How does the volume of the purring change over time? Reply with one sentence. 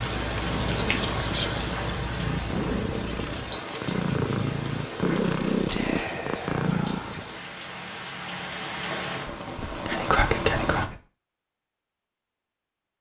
The volume of the purring goes up.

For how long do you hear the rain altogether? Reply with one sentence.
The rain can be heard for 11 seconds in total.